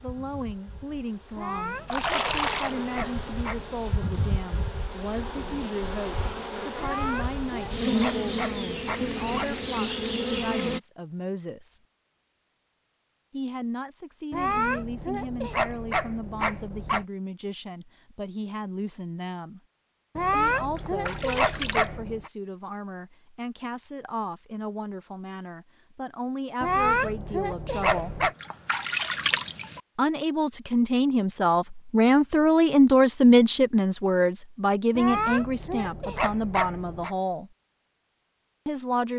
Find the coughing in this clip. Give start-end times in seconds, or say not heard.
not heard.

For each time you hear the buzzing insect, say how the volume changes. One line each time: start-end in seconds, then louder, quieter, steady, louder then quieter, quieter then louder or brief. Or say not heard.
0.0-10.8 louder.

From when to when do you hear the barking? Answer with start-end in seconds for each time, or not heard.
1.4-3.9, 6.8-9.6, 14.3-17.1, 20.1-22.3, 26.6-28.4, 35.0-37.1.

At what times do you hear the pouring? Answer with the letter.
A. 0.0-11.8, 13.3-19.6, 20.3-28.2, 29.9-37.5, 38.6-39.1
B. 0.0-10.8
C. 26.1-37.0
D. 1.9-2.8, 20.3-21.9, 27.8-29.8
D.